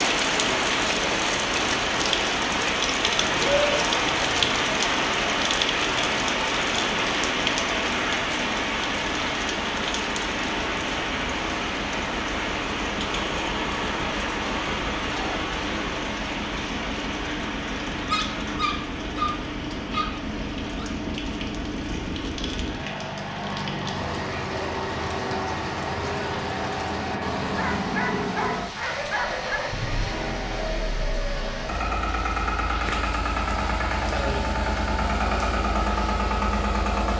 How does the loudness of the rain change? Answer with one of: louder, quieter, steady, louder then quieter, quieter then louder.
quieter.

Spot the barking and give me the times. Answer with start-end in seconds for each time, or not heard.
3.0-4.7, 18.1-20.9, 27.6-29.6.